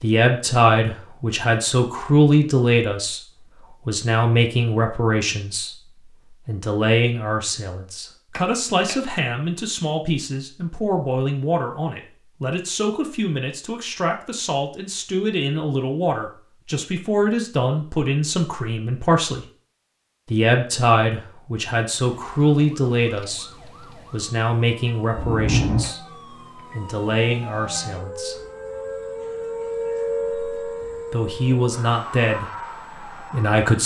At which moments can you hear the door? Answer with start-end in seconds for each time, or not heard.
8.3-8.9, 25.1-25.9.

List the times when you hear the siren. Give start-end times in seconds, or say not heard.
22.0-33.8.